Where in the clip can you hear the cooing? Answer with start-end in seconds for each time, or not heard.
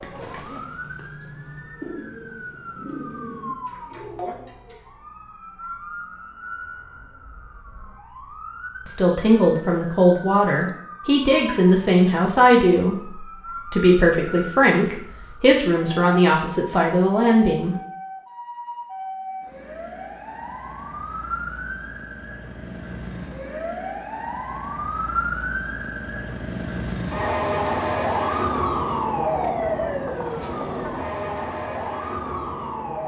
0.0-4.8.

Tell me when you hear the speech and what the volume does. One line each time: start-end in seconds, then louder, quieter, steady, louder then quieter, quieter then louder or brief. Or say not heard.
8.8-17.8 steady.